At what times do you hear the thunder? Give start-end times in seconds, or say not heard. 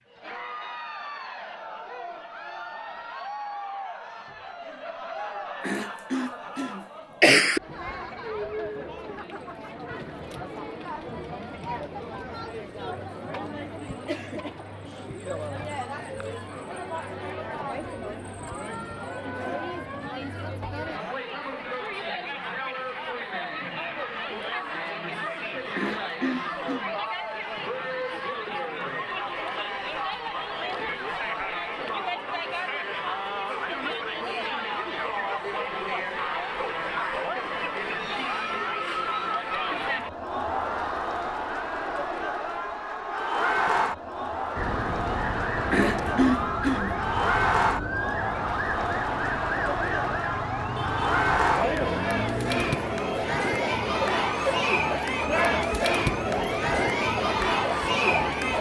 not heard.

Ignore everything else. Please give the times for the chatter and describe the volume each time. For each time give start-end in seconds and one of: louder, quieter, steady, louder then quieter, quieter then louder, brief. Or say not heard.
0.1-58.5 louder.